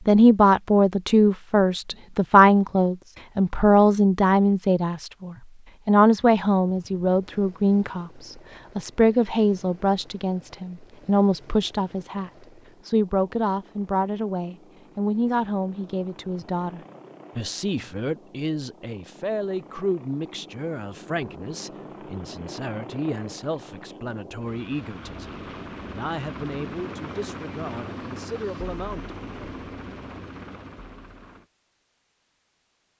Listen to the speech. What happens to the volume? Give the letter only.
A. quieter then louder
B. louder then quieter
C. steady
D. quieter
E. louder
D.